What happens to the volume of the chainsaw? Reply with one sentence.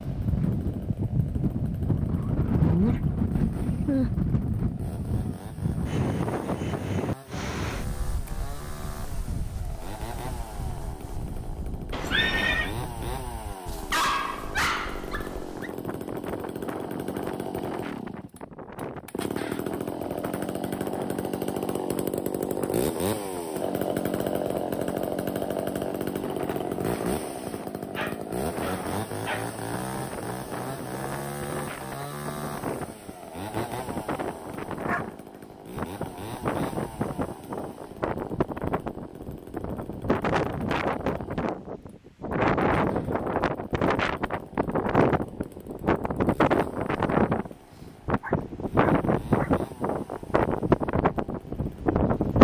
The volume of the chainsaw goes up, then down.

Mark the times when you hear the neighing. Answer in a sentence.
You can hear the neighing from 11.9 to 12.8 s.